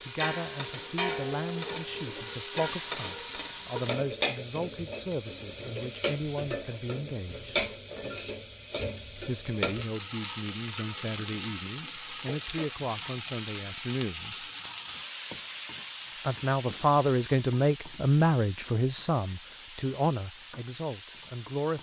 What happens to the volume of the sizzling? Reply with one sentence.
The loudness of the sizzling goes down.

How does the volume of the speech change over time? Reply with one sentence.
The loudness of the speech goes up.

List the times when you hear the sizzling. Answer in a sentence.
The sizzling can be heard from 0.0 to 21.7 s.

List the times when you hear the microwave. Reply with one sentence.
The microwave can't be heard in this clip.